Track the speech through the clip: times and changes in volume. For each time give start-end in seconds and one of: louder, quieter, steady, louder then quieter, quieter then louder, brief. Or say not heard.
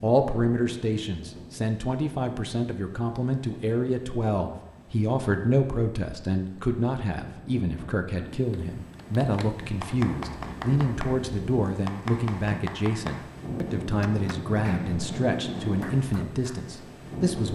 0.0-17.5 steady.